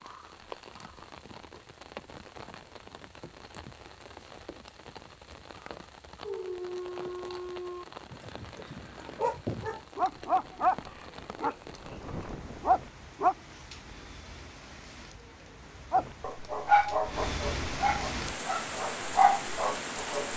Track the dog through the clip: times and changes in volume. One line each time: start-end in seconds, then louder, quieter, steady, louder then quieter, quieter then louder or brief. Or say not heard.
6.2-13.3 quieter then louder
15.9-20.3 quieter then louder.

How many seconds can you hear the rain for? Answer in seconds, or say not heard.
20 s.